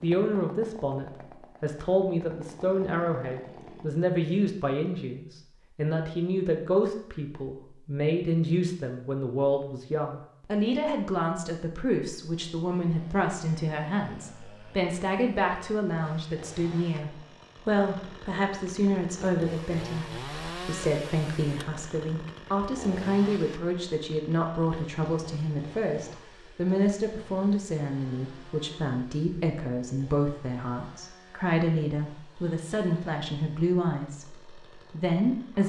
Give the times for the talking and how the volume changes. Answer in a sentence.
The talking can be heard from 0.0 to 35.6 s, at a steady volume.